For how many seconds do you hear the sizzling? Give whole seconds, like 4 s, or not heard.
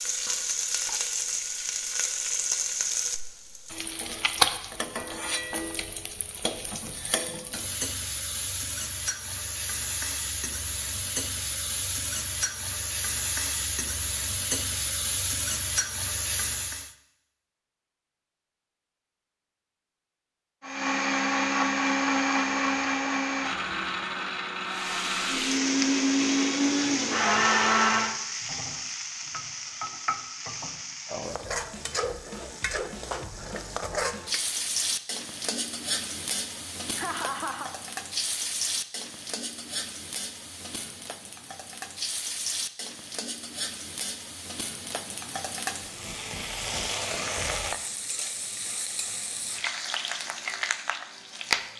44 s.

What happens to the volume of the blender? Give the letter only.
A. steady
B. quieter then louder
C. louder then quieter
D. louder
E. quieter
B.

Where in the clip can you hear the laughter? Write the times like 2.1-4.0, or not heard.
37.0-37.7.